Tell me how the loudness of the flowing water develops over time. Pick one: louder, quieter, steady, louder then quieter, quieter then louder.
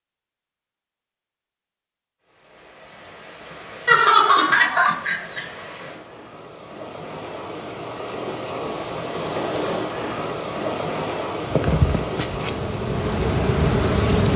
louder.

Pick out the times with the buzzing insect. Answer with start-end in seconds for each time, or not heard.
11.4-14.3.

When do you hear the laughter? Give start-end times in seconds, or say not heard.
3.9-5.4.